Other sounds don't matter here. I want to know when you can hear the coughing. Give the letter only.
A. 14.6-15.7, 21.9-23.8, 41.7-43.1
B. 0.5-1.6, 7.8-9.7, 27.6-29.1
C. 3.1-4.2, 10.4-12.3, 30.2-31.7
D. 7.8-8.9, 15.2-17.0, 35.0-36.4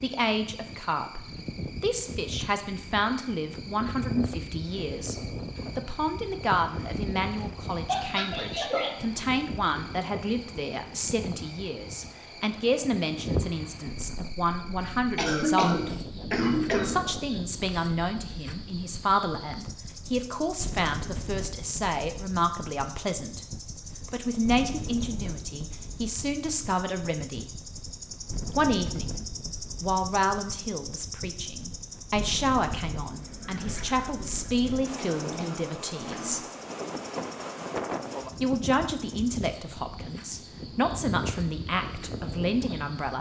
D.